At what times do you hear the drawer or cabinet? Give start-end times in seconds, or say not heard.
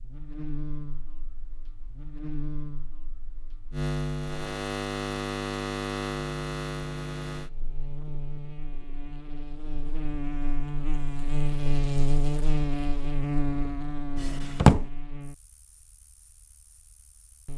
14.2-14.8.